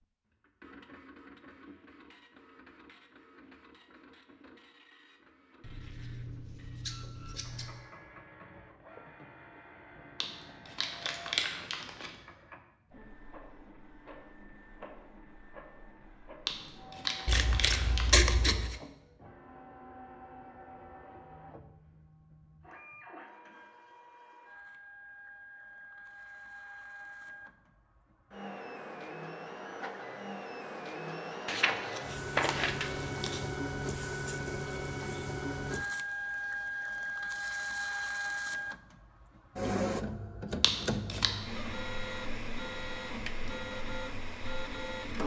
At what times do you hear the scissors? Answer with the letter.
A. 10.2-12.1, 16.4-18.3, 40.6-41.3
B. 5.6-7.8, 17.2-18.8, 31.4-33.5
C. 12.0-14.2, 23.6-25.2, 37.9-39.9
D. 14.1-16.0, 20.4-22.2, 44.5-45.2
B.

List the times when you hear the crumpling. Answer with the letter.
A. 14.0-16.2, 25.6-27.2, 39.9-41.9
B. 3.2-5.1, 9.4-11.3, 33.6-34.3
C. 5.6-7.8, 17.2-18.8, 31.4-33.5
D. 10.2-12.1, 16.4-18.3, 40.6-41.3
D.